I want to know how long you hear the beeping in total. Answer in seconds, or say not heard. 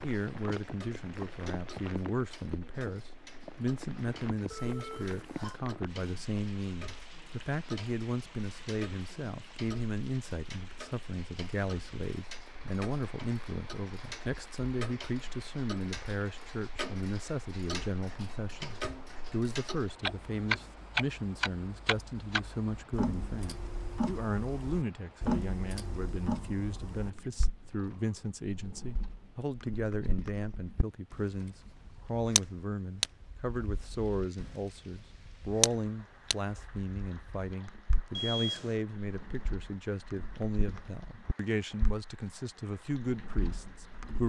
2 s.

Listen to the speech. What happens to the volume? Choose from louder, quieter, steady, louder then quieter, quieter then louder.
steady.